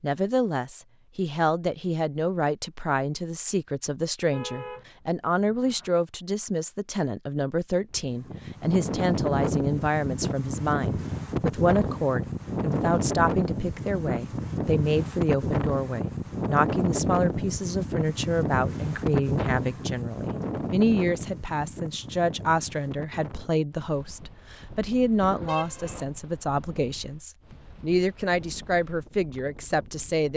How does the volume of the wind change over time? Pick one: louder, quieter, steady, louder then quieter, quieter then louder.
quieter.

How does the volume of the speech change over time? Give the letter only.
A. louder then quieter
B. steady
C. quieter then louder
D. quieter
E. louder
B.